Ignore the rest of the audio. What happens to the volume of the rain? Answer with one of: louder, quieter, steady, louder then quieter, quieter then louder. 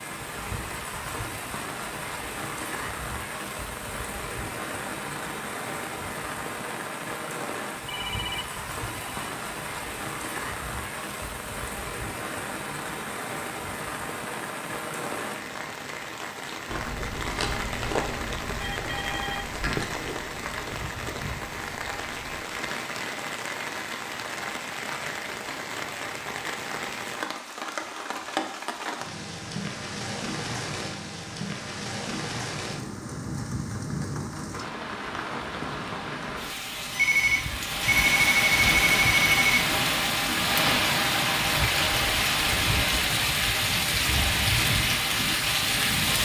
louder.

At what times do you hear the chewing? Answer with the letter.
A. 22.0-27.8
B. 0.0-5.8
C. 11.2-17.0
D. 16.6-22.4
D.